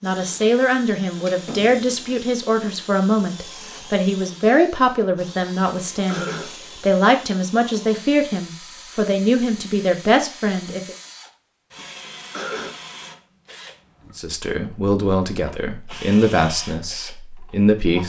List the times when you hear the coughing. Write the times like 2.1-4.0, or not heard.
6.0-6.5, 12.3-12.8.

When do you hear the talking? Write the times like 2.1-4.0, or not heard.
0.0-10.9, 14.2-18.0.